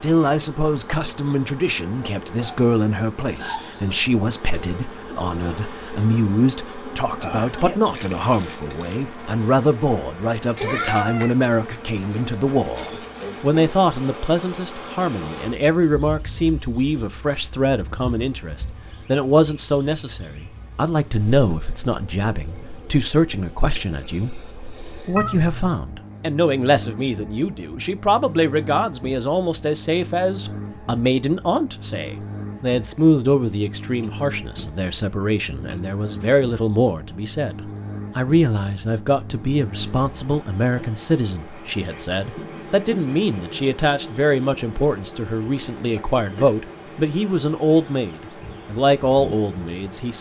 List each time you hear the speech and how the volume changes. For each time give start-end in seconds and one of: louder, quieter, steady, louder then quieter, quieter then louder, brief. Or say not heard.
0.0-50.1 steady.